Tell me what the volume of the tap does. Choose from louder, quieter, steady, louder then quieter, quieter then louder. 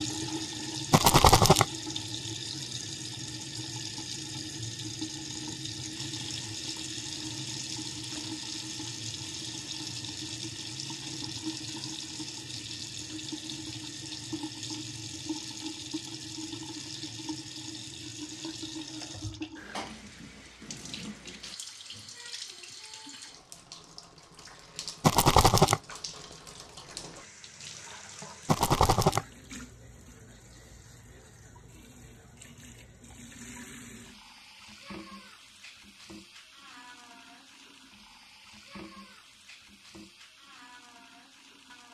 quieter.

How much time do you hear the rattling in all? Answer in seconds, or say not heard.
2 s.